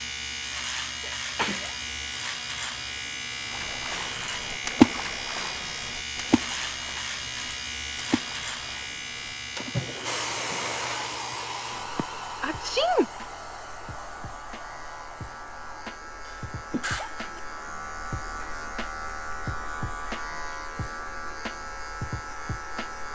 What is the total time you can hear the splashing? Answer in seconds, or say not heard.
8 s.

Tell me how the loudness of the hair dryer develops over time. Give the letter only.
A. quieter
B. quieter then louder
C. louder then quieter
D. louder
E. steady
A.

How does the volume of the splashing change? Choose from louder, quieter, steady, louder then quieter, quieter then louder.
quieter then louder.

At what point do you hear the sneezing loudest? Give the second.
13 s.